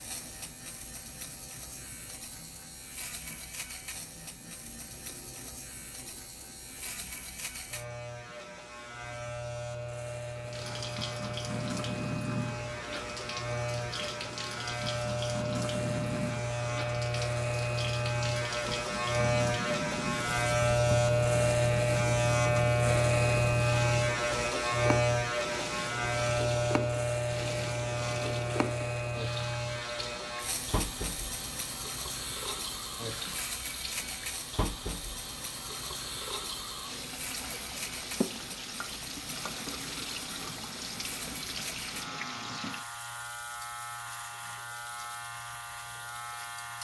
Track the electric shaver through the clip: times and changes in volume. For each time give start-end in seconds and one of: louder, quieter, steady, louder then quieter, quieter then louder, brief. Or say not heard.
0.0-46.7 louder then quieter.